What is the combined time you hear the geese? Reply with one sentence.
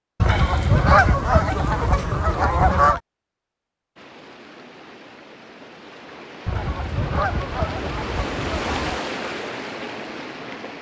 The geese can be heard for 5 seconds in total.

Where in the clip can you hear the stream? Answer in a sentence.
The stream can be heard from 4.0 to 10.7 s.